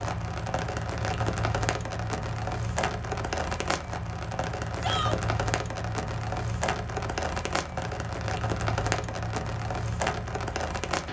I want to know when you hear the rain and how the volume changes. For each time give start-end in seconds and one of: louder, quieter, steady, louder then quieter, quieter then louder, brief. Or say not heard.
0.0-11.0 steady.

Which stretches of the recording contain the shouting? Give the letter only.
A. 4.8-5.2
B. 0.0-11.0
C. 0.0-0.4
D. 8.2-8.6
A.